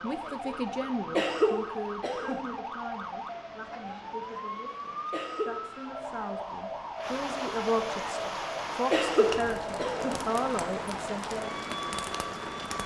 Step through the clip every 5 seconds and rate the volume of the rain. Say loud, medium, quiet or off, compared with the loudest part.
quiet, loud, loud.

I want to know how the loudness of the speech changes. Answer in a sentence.
The loudness of the speech goes down, then up.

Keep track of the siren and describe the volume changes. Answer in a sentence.
The volume of the siren stays about the same.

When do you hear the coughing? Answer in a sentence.
The coughing can be heard from 1.1 to 2.5 s, from 5.1 to 5.6 s and from 8.9 to 10.2 s.